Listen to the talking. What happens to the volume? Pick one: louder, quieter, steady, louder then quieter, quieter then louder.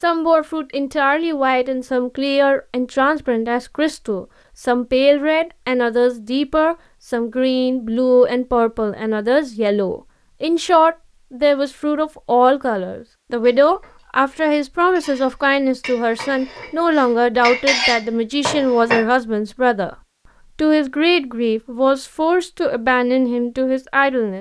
steady.